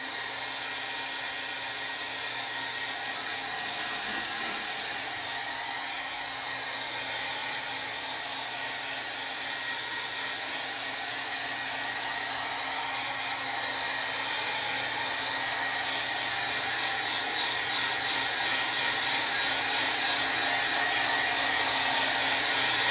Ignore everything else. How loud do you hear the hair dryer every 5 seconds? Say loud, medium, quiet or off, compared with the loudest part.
medium, medium, medium, loud, loud.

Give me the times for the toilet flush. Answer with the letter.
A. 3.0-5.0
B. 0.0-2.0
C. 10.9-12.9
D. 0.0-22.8
A.